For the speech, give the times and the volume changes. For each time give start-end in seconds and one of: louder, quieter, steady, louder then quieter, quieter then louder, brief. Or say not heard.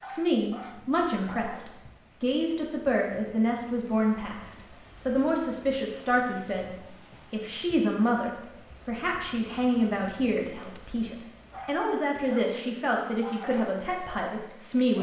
0.0-14.9 steady.